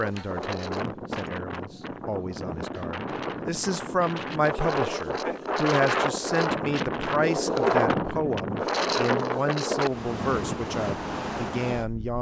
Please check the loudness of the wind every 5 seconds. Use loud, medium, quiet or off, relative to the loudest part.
medium, loud, medium.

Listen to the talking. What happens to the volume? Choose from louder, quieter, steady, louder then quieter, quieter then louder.
louder.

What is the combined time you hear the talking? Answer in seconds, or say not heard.
12 s.